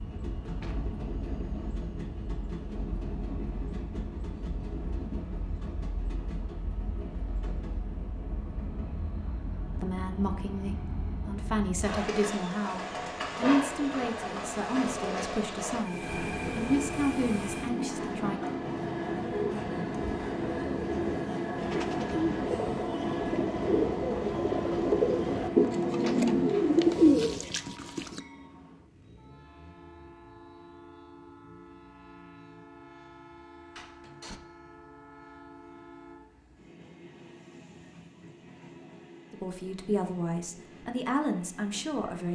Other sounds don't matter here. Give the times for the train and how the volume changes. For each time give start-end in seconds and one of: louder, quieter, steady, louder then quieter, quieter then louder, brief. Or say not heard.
0.0-42.3 louder then quieter.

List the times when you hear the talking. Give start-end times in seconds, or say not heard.
9.8-18.4, 39.3-42.3.